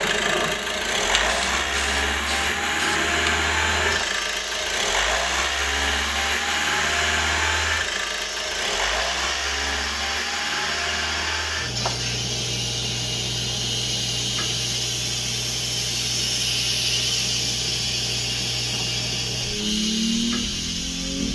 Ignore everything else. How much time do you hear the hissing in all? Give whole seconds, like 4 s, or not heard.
21 s.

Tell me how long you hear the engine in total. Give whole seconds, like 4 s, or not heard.
21 s.